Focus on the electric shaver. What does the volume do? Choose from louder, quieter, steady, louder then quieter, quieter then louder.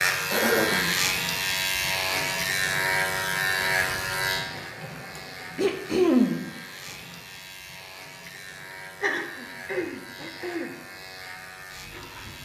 quieter.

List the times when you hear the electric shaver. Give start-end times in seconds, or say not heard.
0.0-12.3.